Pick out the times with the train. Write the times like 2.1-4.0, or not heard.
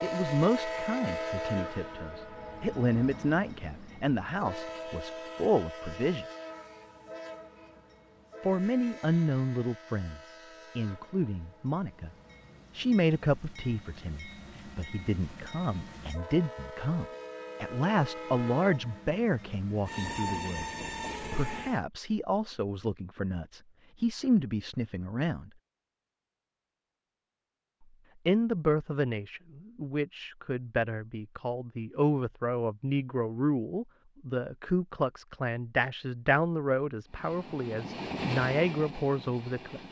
0.0-21.8, 37.0-39.8.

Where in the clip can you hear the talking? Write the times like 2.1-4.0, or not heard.
0.0-6.2, 8.4-12.1, 12.8-25.5, 28.2-39.8.